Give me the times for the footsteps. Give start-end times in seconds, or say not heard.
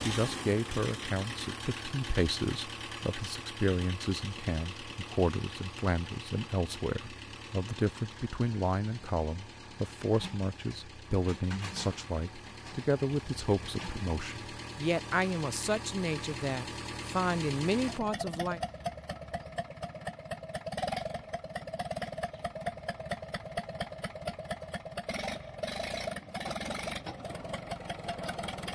not heard.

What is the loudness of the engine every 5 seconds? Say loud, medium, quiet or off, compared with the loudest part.
loud, medium, medium, loud, loud, loud.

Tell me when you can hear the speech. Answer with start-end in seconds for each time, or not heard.
0.1-18.6.